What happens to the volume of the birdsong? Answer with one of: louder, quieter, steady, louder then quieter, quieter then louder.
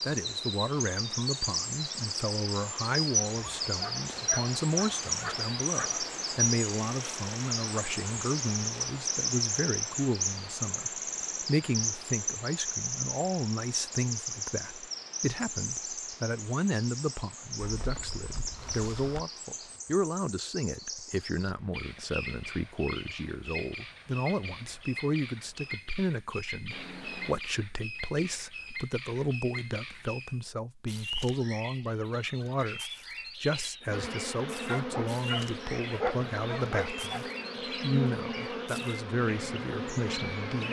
quieter.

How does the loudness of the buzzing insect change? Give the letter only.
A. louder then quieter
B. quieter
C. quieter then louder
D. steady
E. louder
D.